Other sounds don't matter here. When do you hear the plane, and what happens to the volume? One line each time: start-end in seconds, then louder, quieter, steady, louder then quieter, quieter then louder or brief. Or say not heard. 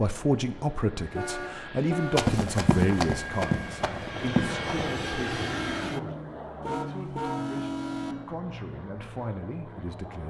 0.0-10.2 louder then quieter.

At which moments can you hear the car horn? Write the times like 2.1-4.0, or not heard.
1.1-2.3, 6.6-8.2.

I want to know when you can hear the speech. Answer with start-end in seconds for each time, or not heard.
0.0-10.2.